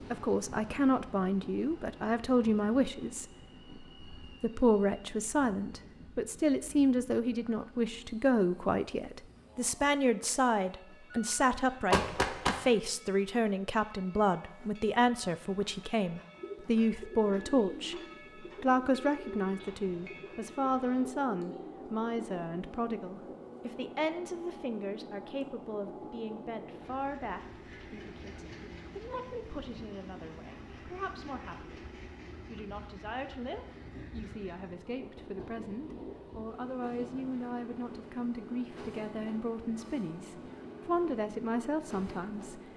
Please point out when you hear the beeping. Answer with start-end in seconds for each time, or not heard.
11.1-12.6.